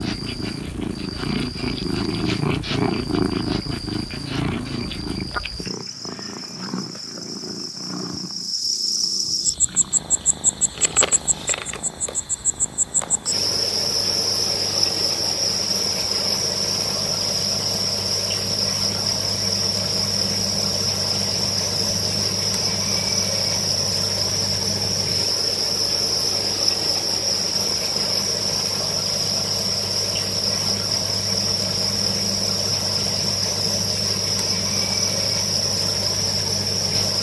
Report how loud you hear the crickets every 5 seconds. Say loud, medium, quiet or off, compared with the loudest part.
quiet, medium, loud, loud, loud, loud, loud, loud.